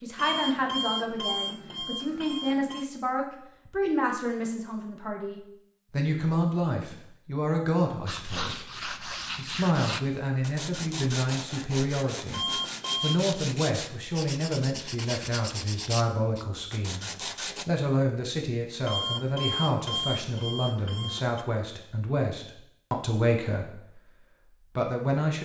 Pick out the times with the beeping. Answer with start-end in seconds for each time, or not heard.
0.1-2.9, 12.3-13.2, 18.9-21.4.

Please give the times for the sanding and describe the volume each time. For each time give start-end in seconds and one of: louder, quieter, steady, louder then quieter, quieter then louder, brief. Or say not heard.
8.1-17.6 steady.